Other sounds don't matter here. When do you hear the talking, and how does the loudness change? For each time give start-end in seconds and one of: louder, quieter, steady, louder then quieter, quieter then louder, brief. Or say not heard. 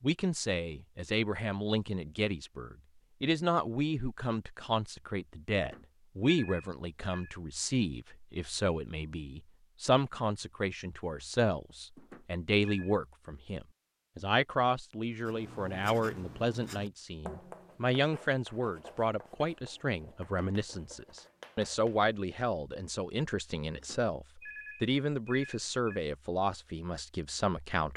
0.0-27.9 steady.